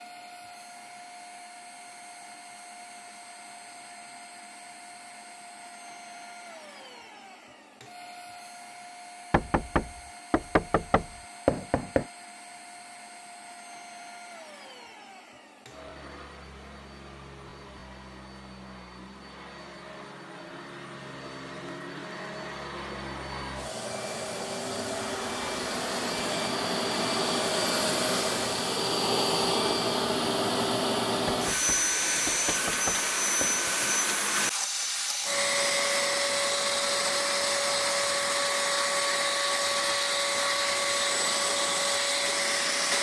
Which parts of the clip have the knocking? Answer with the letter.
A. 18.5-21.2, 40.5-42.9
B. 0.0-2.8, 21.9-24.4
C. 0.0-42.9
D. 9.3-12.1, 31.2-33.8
D.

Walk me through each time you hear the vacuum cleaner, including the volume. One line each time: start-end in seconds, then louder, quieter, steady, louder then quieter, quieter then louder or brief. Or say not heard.
0.0-42.9 louder.